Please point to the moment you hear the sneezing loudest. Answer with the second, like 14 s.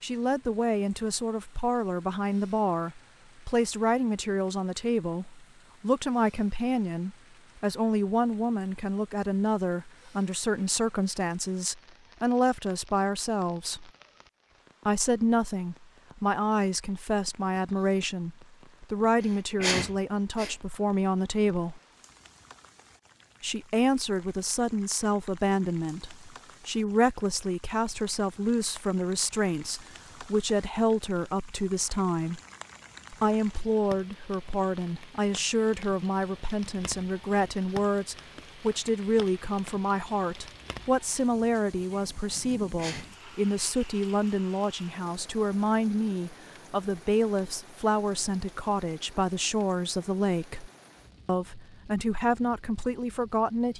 20 s.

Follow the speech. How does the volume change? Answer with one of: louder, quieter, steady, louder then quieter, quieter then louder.
steady.